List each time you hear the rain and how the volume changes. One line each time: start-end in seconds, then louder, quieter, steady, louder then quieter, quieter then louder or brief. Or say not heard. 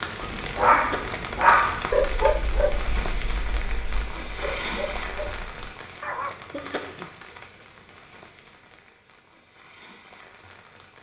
0.0-10.9 quieter.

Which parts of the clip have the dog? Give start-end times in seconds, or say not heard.
0.2-6.3.